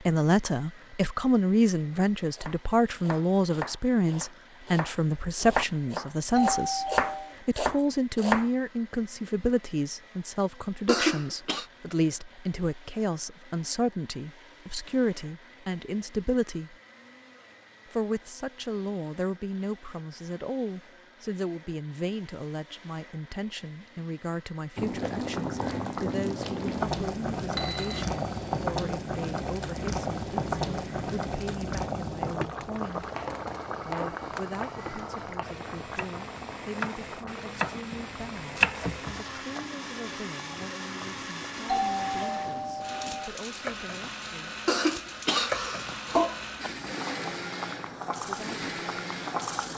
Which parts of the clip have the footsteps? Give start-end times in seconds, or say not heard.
not heard.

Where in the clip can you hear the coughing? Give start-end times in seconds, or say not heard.
10.8-11.7, 44.6-46.7.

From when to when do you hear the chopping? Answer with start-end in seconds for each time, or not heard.
2.3-8.4, 33.0-39.6.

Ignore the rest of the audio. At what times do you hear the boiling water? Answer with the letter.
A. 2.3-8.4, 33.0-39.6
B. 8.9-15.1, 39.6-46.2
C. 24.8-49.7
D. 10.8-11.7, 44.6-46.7
C.